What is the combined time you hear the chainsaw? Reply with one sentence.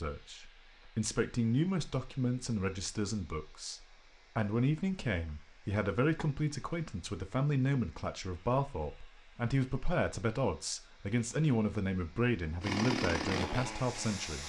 You can hear the chainsaw for 2 seconds altogether.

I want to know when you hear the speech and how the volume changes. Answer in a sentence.
The speech can be heard from 0.0 to 14.4 s, at a steady volume.